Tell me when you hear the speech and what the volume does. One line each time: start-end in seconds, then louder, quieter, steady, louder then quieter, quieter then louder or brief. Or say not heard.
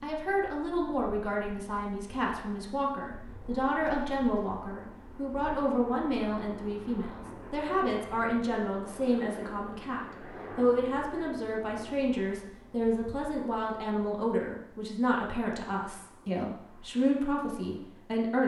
0.0-18.4 steady.